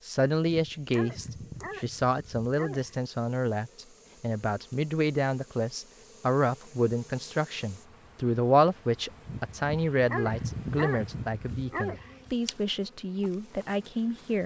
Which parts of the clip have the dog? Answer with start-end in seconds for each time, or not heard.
0.5-3.0, 9.5-12.3.